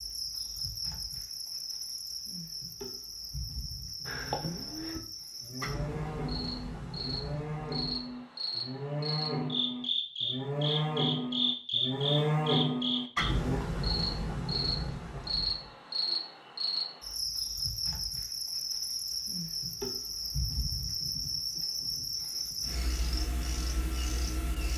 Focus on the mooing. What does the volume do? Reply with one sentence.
The loudness of the mooing goes up.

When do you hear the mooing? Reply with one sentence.
You can hear the mooing from 4.0 to 13.6 s.